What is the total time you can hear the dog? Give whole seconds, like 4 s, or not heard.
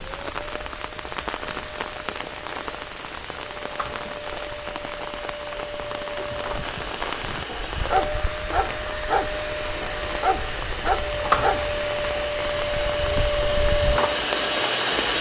6 s.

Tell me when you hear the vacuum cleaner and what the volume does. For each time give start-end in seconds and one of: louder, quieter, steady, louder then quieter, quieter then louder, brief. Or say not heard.
0.0-15.1 louder.